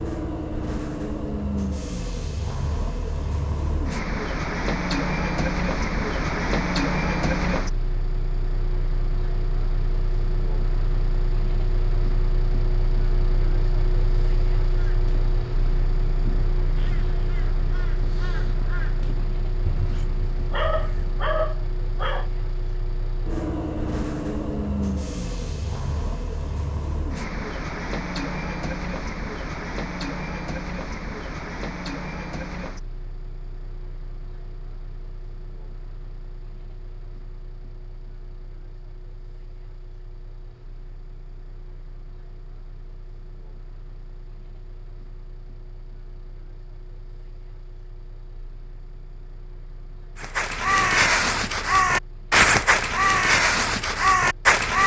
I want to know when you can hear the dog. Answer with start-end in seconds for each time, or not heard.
20.5-22.3.